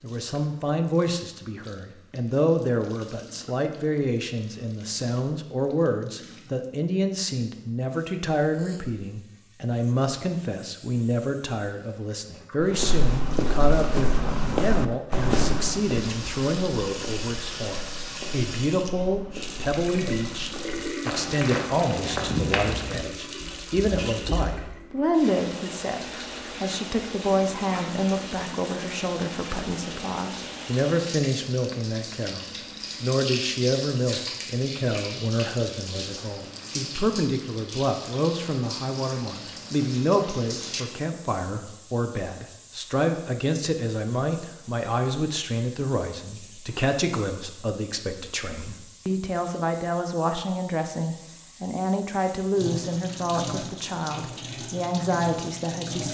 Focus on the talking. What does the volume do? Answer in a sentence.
The volume of the talking stays about the same.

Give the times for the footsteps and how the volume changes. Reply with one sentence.
The footsteps can be heard from 12.6 to 24.7 s, getting quieter then louder.